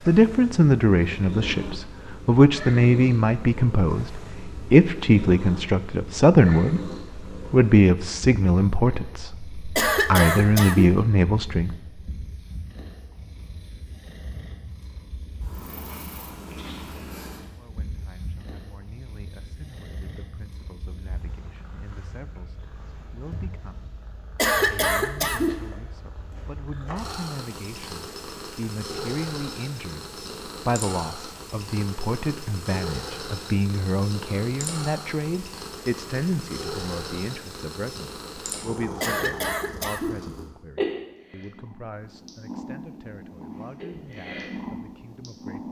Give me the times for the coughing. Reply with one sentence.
You can hear the coughing from 9.8 to 10.9 s, from 24.4 to 25.6 s and from 39.0 to 40.2 s.